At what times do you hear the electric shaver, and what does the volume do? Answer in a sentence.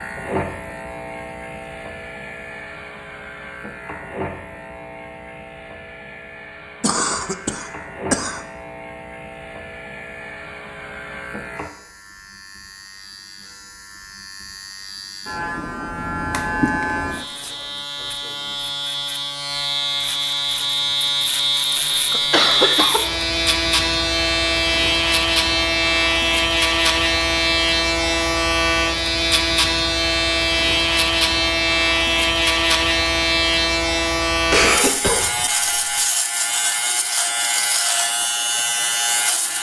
The electric shaver can be heard from 0.0 to 39.5 s, getting louder.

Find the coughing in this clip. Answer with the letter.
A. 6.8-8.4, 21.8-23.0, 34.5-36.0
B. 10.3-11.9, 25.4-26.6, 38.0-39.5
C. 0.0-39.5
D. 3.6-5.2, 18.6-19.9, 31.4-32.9
A.